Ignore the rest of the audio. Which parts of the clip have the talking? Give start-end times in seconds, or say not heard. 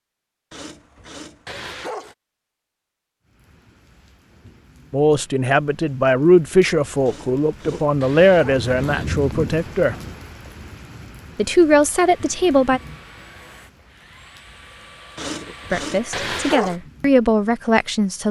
4.9-9.9, 11.3-12.8, 15.7-18.2.